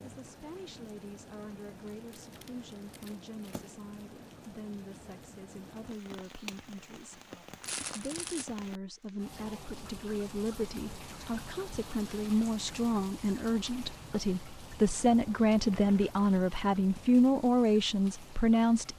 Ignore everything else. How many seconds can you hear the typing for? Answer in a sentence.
You can't hear the typing here.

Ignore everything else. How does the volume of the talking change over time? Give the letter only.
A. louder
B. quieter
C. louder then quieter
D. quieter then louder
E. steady
A.